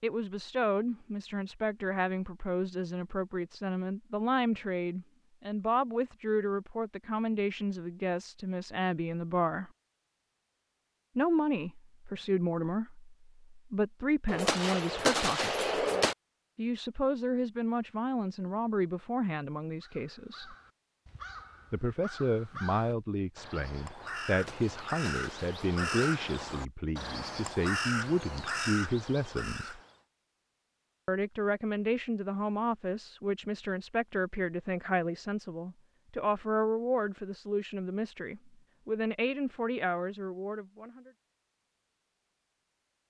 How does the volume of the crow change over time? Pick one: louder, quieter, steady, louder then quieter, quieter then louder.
louder.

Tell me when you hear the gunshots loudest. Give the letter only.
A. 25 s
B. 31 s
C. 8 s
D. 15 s
D.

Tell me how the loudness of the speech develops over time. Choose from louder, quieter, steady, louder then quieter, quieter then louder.
steady.